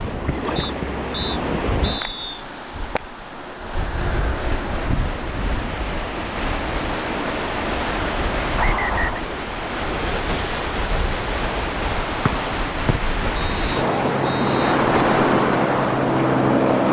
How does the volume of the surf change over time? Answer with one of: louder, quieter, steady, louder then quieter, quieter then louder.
louder.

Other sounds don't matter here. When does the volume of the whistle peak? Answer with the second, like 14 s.
9 s.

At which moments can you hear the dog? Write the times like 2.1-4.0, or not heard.
not heard.